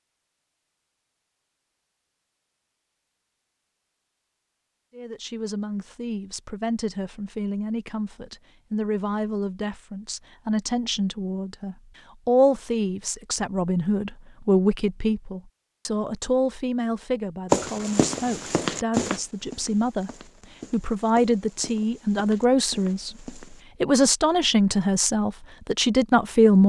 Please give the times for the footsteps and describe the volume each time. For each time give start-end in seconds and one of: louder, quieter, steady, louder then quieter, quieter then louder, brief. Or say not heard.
17.5-23.6 quieter.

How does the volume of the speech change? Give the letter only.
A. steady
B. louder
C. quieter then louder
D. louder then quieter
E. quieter
B.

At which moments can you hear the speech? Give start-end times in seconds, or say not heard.
5.0-20.1, 20.7-26.6.